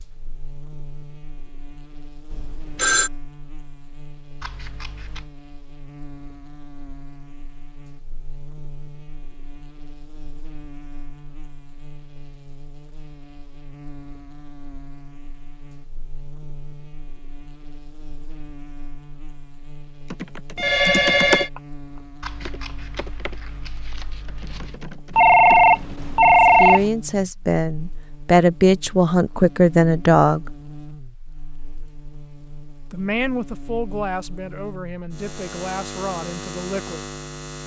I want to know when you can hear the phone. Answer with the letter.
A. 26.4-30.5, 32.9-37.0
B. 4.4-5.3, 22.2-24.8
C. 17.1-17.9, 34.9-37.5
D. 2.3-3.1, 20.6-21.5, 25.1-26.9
D.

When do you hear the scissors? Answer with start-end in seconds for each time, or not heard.
4.4-5.3, 22.2-24.8.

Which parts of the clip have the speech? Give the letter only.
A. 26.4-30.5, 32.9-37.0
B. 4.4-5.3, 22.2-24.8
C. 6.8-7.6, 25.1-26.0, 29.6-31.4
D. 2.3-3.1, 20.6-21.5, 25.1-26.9
A.